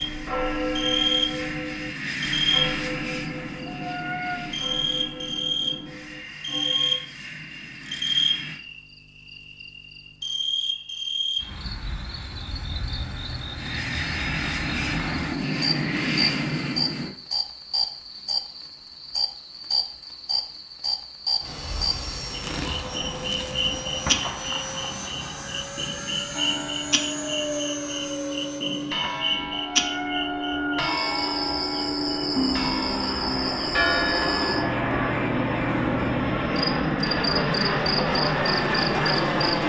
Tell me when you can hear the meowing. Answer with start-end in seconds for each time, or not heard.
3.6-4.5, 29.7-31.0.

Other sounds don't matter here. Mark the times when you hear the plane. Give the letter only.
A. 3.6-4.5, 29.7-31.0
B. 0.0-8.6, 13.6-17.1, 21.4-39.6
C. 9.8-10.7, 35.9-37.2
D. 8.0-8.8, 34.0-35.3
B.